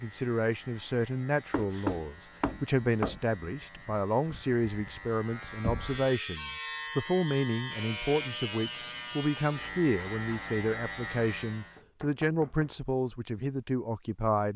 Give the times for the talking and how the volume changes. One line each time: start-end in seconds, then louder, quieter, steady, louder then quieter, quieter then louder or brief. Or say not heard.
0.0-14.5 steady.